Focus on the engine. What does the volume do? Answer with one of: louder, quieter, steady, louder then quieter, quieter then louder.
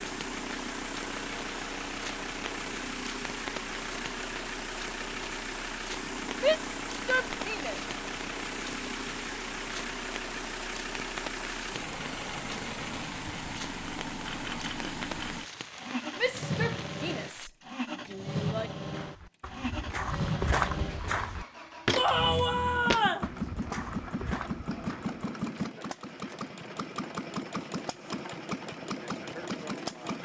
steady.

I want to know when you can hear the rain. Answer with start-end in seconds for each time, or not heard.
0.0-17.5.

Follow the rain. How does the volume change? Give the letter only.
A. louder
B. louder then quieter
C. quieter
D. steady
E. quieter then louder
D.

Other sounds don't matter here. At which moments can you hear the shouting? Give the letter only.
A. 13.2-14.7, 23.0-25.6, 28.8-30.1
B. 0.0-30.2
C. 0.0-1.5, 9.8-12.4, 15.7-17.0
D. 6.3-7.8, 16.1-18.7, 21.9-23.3
D.